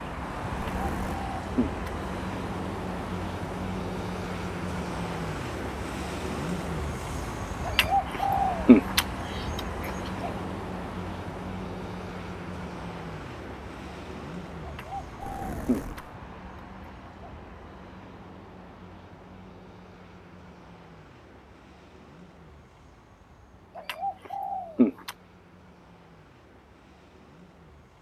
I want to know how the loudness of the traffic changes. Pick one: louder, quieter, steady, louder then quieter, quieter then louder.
quieter.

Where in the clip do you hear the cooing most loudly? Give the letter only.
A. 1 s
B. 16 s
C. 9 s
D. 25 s
C.